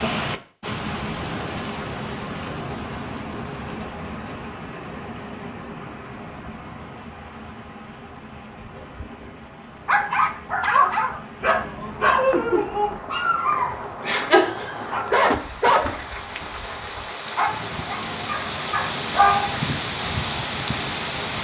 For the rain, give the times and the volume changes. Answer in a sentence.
You can hear the rain from 0.0 to 21.4 s, getting quieter then louder.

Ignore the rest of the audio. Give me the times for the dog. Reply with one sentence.
You can hear the dog from 9.8 to 19.6 s.